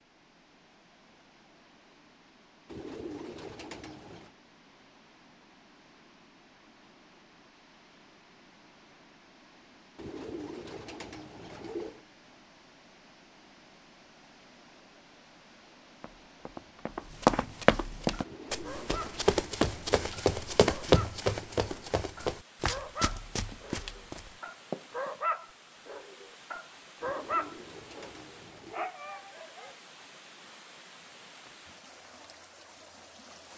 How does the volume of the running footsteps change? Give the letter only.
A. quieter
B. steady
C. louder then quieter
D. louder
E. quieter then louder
A.